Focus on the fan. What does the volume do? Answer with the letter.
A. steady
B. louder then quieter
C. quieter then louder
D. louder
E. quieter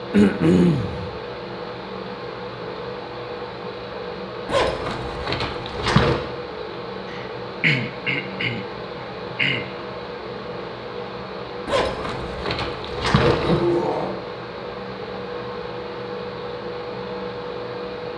A.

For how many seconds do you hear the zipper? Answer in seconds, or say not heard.
4 s.